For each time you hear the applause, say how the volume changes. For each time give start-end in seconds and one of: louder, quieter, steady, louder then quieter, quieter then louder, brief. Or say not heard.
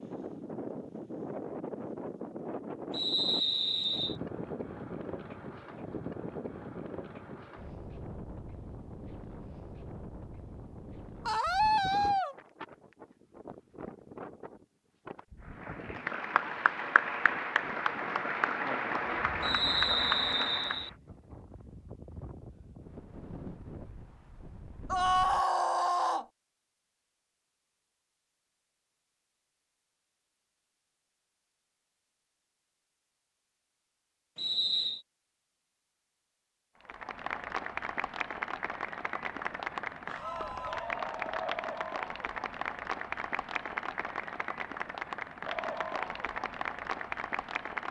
15.4-20.9 steady
36.8-47.8 steady.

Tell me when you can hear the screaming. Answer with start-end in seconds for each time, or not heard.
11.2-12.3, 24.9-26.2, 40.0-41.0.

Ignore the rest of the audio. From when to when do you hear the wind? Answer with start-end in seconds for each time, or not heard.
0.0-25.4.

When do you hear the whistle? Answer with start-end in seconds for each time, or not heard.
2.9-4.2, 19.4-20.9, 34.4-35.0.